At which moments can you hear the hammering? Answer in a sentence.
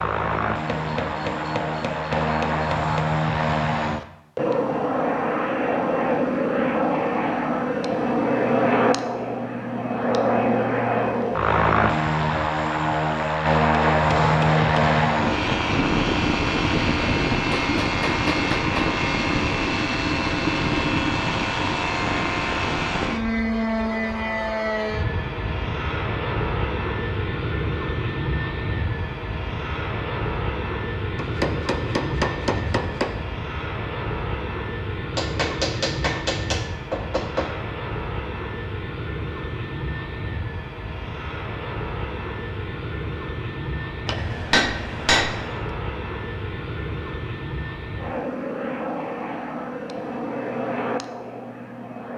The hammering can be heard from 0.7 to 3.0 s, from 13.7 to 15.1 s, from 17.6 to 18.9 s, from 31.1 to 33.2 s, from 35.1 to 37.6 s and from 44.0 to 45.5 s.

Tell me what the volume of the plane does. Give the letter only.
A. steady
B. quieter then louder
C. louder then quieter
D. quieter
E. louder
D.